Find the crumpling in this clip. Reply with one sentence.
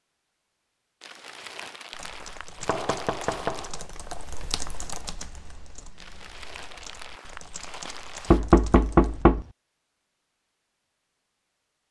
You can hear the crumpling from 1.0 to 3.8 s and from 6.0 to 8.4 s.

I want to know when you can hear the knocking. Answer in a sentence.
You can hear the knocking from 2.6 to 3.9 s and from 8.3 to 9.4 s.